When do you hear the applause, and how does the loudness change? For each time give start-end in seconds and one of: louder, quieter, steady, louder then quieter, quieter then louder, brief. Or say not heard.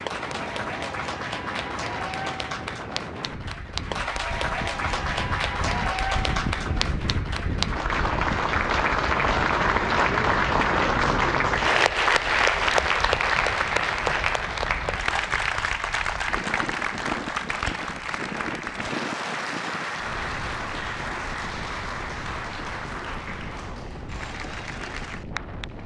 0.0-25.8 louder then quieter.